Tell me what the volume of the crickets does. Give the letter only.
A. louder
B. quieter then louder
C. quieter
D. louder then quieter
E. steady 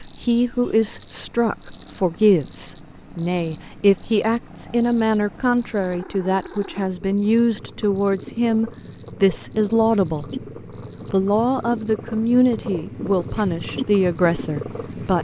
C.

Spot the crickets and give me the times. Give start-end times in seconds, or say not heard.
0.0-15.1.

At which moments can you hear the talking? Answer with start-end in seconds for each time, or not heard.
0.0-10.4, 11.1-15.2.